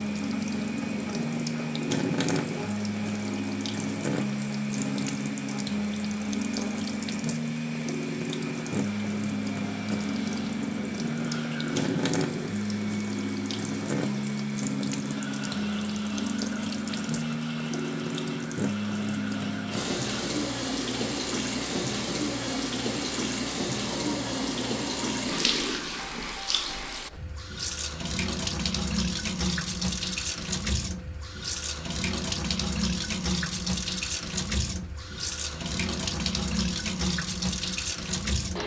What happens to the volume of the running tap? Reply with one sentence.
The loudness of the running tap stays about the same.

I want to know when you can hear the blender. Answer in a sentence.
The blender can be heard from 0.0 to 25.4 s.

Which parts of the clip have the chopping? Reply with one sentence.
You can't hear the chopping here.